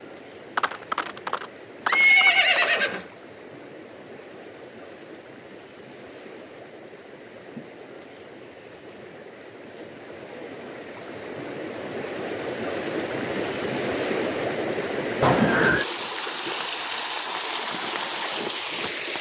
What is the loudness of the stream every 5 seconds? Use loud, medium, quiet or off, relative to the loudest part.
quiet, quiet, loud, loud.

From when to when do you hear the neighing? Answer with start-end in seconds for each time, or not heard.
0.6-3.0, 15.2-15.8.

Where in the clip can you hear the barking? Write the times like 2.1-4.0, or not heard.
not heard.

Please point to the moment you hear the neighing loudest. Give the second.
2 s.